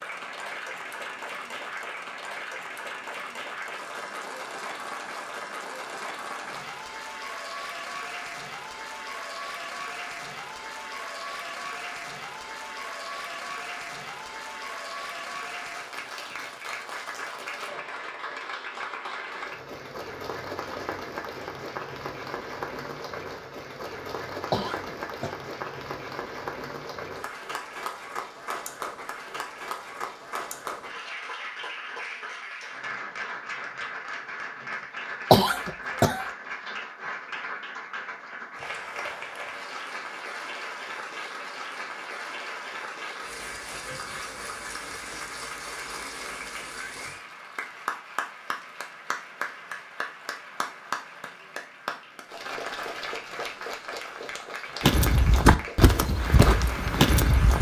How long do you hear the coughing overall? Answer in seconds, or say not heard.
2 s.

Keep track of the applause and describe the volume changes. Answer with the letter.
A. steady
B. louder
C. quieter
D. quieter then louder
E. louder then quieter
A.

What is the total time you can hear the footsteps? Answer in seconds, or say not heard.
3 s.